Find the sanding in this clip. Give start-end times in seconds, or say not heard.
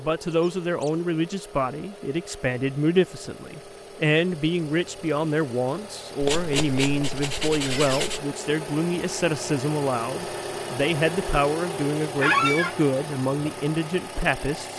6.2-8.2.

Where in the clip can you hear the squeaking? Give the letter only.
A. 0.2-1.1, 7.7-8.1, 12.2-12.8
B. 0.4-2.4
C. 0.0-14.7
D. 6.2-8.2
A.